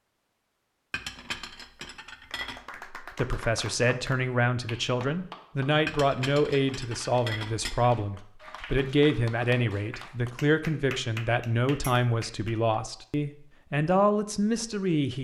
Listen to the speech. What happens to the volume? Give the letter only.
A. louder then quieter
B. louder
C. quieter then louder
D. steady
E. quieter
D.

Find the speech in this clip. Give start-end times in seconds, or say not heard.
2.8-15.2.